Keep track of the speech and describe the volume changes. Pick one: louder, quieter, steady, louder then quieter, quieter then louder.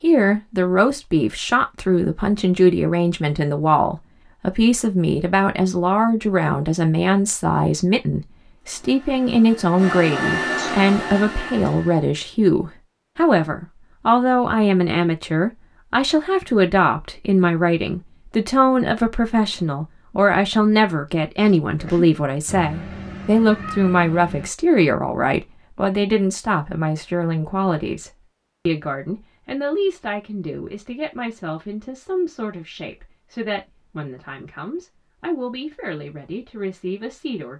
quieter.